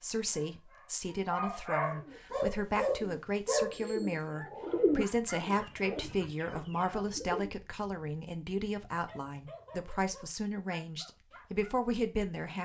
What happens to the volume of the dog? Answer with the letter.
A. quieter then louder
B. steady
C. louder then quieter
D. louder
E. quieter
C.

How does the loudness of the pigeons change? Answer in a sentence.
The loudness of the pigeons goes up, then down.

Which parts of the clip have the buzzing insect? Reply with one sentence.
The buzzing insect can't be heard in this clip.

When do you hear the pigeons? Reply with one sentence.
The pigeons can be heard from 1.9 to 7.5 s.